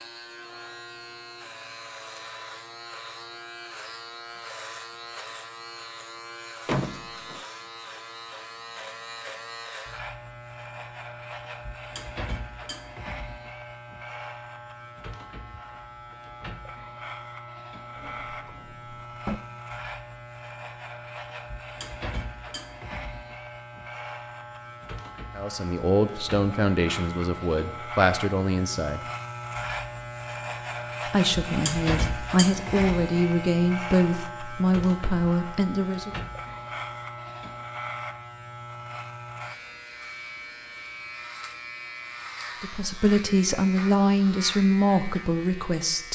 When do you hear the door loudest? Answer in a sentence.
The loudest moment of the door is at 7 seconds.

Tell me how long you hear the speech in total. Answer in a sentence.
You can hear the speech for 12 seconds altogether.